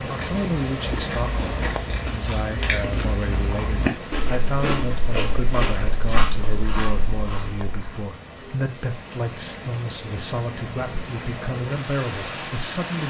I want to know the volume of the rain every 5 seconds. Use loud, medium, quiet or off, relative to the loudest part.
loud, medium, loud.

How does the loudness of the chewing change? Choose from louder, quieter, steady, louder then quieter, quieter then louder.
louder then quieter.